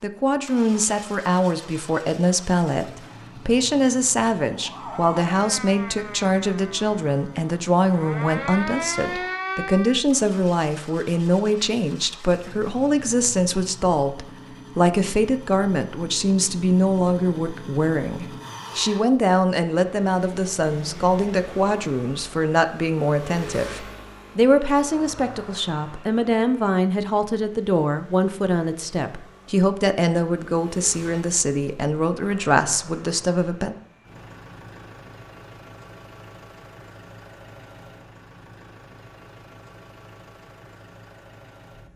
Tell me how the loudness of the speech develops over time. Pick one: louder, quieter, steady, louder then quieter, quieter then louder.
steady.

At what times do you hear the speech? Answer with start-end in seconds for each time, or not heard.
0.0-33.8.